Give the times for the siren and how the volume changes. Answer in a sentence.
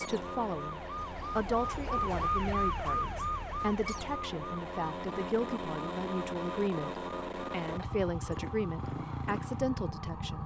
You can hear the siren from 0.0 to 10.4 s, getting quieter.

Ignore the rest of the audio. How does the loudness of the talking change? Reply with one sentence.
The loudness of the talking stays about the same.